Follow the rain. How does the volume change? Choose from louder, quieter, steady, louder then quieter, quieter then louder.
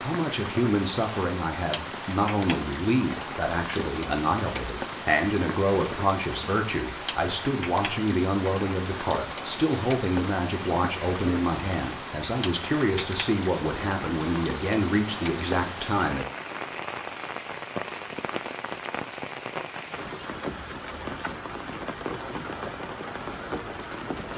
steady.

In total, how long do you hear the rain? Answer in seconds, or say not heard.
24 s.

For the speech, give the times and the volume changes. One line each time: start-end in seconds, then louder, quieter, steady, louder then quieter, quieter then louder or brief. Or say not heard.
0.0-16.2 steady.